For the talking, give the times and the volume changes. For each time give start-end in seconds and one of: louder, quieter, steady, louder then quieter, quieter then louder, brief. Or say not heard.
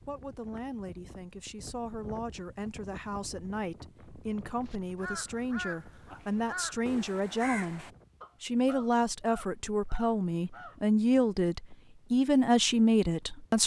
0.1-13.6 louder.